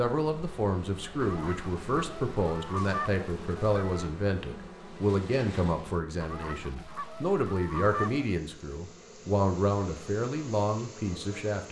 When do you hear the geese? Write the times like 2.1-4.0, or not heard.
1.2-4.1, 6.2-8.3.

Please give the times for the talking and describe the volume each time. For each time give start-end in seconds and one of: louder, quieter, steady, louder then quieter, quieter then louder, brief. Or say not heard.
0.0-11.6 steady.